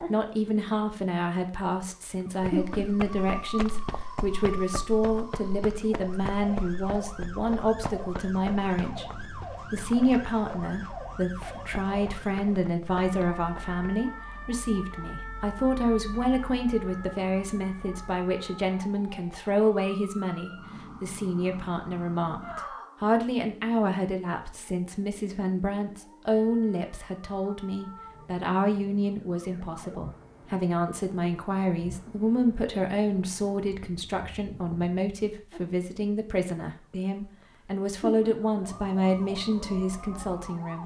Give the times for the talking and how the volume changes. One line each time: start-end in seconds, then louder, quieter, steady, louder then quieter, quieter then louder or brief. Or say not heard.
0.0-9.1 steady
9.7-40.8 steady.